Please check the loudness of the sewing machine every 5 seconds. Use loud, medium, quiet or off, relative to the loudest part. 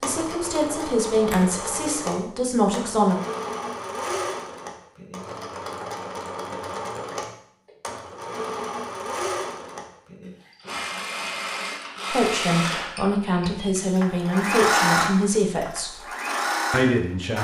medium, medium, loud, loud.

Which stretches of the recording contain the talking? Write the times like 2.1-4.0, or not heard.
0.0-3.1, 12.1-16.0, 16.7-17.4.